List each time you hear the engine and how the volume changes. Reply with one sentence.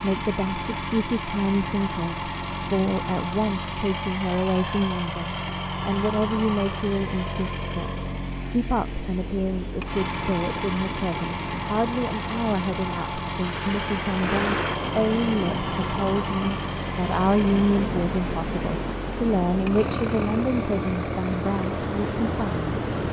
The engine can be heard from 0.0 to 23.0 s, at a steady volume.